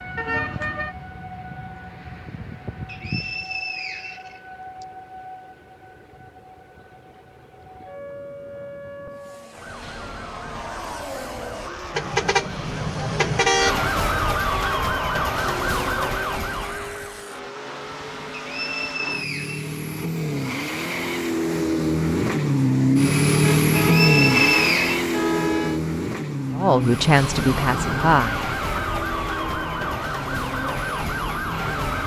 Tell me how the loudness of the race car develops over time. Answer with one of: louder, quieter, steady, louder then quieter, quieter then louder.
louder then quieter.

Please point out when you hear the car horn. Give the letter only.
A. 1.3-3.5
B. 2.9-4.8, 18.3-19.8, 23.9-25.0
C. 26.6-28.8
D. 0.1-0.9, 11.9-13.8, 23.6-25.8
D.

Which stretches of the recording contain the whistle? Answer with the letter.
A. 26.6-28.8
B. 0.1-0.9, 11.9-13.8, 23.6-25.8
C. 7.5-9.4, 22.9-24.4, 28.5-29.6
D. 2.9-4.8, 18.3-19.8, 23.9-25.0
D.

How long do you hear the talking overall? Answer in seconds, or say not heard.
2 s.